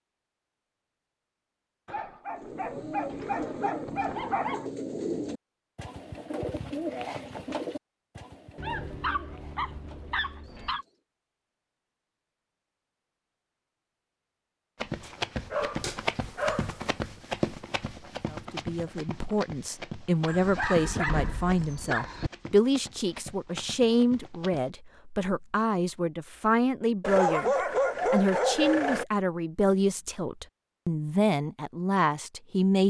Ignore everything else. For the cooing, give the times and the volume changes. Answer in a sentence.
You can hear the cooing from 2.2 to 11.0 s, getting quieter.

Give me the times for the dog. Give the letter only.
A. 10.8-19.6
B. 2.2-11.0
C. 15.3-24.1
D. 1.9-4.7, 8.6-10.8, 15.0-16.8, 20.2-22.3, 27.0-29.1
D.